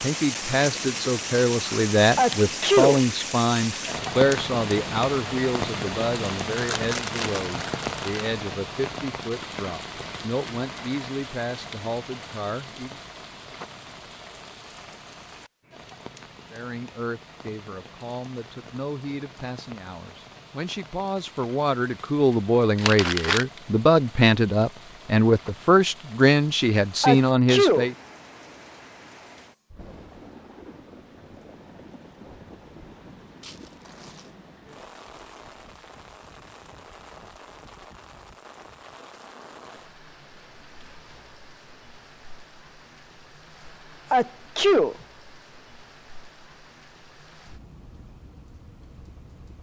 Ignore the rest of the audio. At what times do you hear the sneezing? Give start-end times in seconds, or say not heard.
2.1-3.0, 27.0-27.9, 44.0-45.0.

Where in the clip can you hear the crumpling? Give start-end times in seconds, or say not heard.
6.5-8.3, 22.8-23.4, 33.4-34.4.